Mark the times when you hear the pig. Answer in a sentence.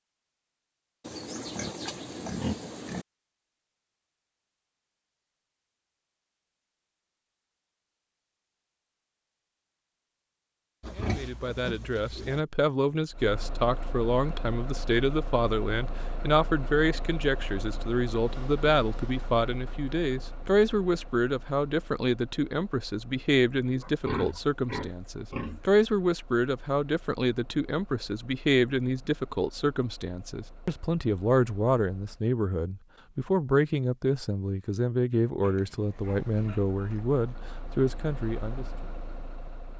You can hear the pig from 1.0 to 3.0 s, from 10.8 to 12.4 s, from 23.8 to 25.8 s and from 35.4 to 37.2 s.